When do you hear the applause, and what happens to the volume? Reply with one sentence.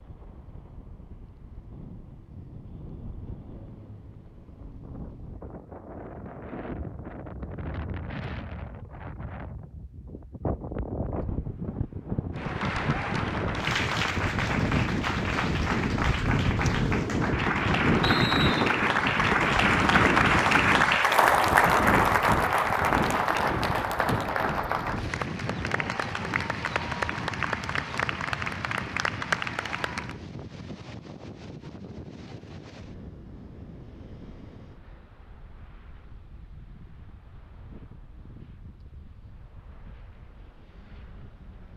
You can hear the applause from 12.3 to 30.2 s, getting louder then quieter.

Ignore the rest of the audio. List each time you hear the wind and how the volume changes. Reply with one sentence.
You can hear the wind from 0.0 to 41.7 s, getting louder then quieter.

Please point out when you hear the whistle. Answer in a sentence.
You can hear the whistle from 18.0 to 18.6 s.